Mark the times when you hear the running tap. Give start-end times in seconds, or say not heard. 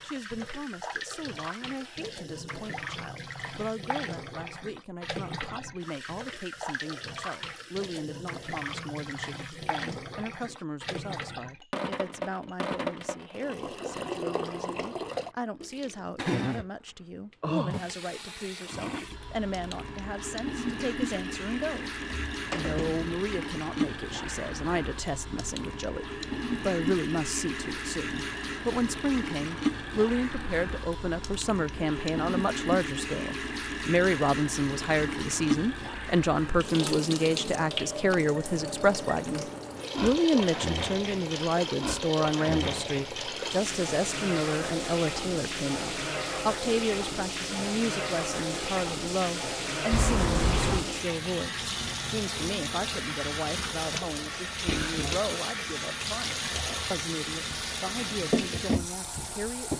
0.0-59.7.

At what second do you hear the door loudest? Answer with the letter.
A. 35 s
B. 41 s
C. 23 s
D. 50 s
D.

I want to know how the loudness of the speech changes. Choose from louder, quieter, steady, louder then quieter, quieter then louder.
louder then quieter.